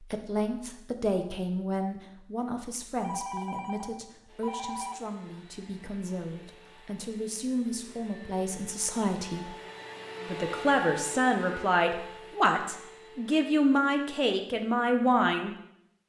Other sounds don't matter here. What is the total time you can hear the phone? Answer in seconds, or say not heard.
2 s.